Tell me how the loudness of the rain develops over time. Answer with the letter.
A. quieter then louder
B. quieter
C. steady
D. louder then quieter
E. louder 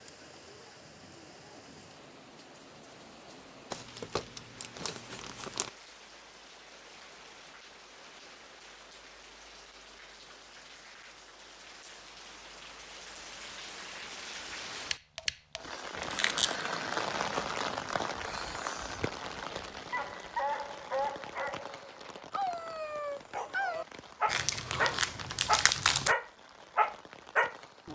D.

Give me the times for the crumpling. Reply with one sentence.
The crumpling can be heard from 3.7 to 5.7 s, from 16.0 to 16.7 s and from 24.2 to 26.1 s.